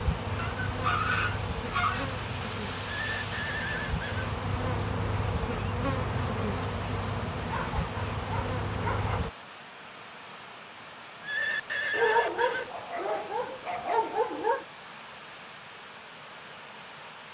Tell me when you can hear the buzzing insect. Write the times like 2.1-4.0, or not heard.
0.0-9.3.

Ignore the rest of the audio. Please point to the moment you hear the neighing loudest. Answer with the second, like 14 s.
12 s.